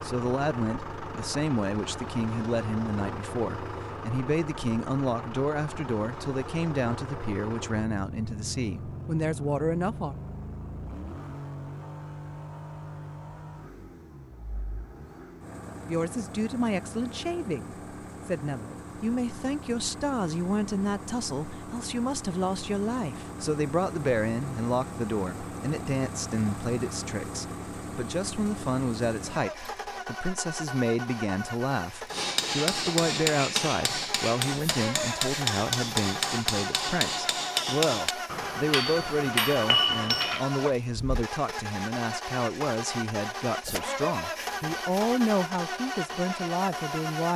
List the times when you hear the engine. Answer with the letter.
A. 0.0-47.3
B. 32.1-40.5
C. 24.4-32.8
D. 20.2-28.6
A.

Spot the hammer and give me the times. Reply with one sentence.
You can hear the hammer from 32.1 to 40.5 s.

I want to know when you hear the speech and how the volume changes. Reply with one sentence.
You can hear the speech from 0.0 to 10.2 s, at a steady volume; and from 15.8 to 47.3 s, at a steady volume.